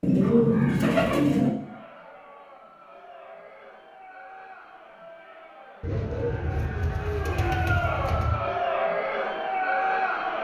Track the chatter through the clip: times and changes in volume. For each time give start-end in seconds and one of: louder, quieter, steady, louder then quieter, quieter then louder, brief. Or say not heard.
1.4-10.3 louder.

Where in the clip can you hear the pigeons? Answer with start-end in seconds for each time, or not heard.
0.0-1.6, 5.8-8.4.